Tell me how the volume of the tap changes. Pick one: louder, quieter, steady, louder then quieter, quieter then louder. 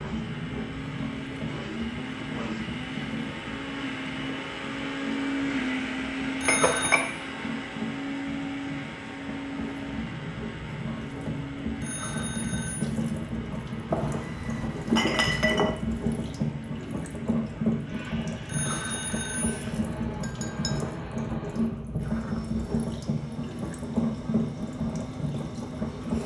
louder.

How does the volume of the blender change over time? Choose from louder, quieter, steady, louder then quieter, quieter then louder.
quieter.